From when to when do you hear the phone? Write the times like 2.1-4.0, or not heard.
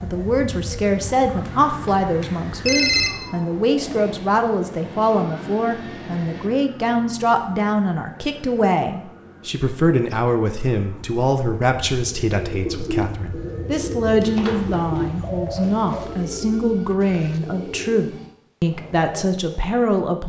1.4-3.1, 14.2-16.1.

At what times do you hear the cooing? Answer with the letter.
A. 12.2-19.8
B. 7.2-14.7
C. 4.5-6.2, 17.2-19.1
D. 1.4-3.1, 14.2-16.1
A.